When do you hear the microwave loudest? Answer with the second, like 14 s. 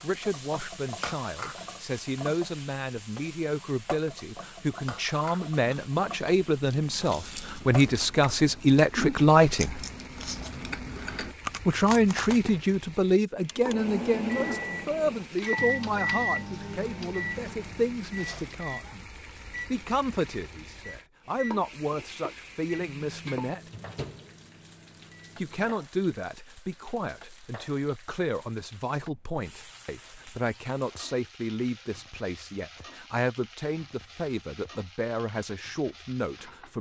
16 s.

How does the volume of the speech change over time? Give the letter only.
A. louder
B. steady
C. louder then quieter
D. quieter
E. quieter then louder
C.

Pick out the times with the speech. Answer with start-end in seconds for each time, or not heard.
0.0-9.8, 11.7-19.1, 19.7-23.7, 25.4-36.7.